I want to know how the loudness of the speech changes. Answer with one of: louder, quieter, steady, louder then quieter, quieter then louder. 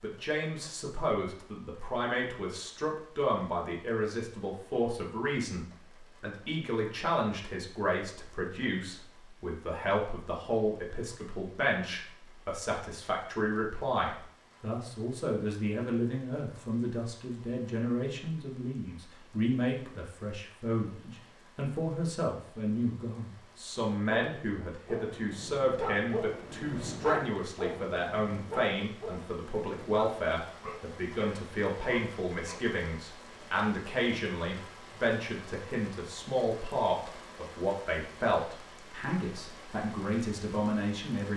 steady.